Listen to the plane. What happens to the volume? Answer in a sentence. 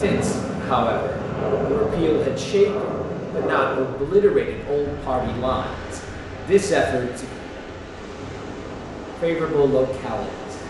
The loudness of the plane goes down.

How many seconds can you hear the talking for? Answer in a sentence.
You can hear the talking for 9 seconds altogether.